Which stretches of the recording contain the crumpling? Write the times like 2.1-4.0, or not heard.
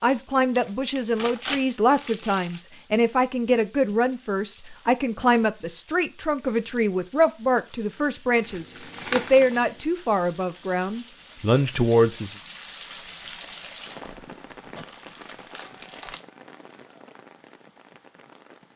0.6-2.6, 8.4-9.7, 13.4-16.2.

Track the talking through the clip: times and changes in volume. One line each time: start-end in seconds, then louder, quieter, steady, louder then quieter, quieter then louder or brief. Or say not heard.
0.0-12.3 steady.